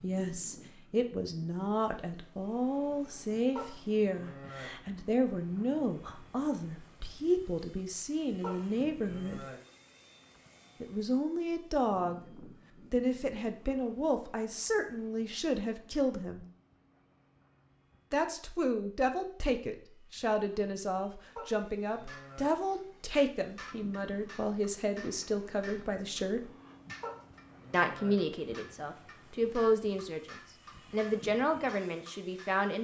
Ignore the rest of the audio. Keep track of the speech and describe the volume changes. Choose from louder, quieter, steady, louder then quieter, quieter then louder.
steady.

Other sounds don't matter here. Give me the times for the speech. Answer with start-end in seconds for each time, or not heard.
0.0-9.4, 10.8-16.4, 18.1-26.5, 27.7-32.7.